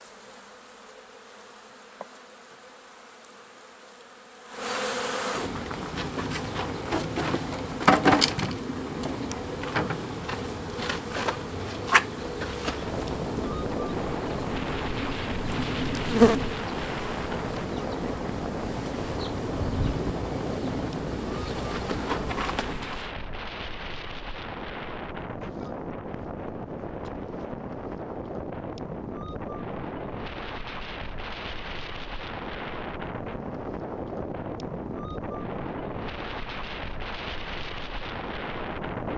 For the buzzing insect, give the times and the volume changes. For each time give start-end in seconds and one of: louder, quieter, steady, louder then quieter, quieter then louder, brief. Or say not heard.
0.0-23.1 louder then quieter.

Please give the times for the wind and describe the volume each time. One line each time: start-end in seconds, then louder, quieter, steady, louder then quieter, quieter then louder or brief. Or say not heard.
12.7-39.1 steady.